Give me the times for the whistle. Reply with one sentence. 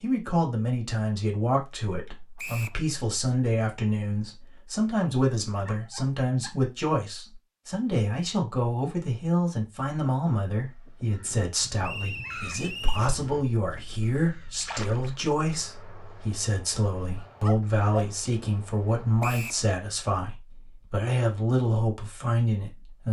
The whistle can be heard from 2.4 to 2.8 s, from 11.8 to 13.1 s and from 19.2 to 19.6 s.